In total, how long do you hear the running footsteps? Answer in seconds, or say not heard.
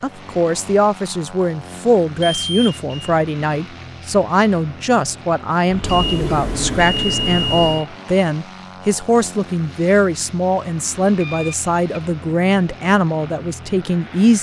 not heard.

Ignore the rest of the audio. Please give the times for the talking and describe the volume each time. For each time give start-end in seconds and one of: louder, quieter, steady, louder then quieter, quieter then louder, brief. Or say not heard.
0.0-14.3 steady.